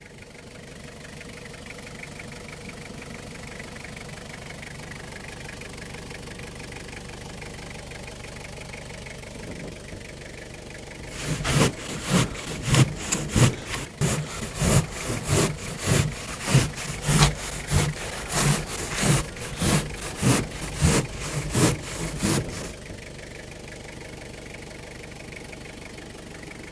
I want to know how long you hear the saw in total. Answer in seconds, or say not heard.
12 s.